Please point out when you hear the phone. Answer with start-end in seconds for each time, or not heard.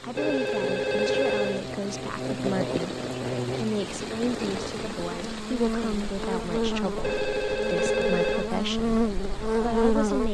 0.1-1.6, 7.0-8.5.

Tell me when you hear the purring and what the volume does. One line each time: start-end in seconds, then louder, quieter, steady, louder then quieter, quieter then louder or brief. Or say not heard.
not heard.